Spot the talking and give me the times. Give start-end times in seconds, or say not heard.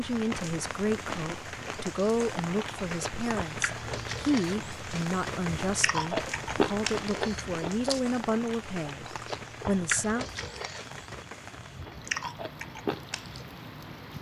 0.0-10.2.